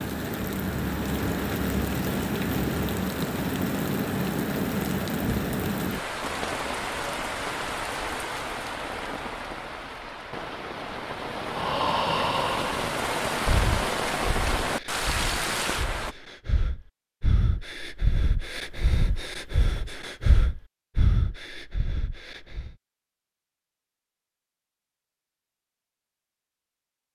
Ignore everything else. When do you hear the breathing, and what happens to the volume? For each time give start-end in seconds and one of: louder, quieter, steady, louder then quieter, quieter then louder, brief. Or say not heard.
11.4-22.8 quieter then louder.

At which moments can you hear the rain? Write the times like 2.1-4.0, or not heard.
0.0-16.1.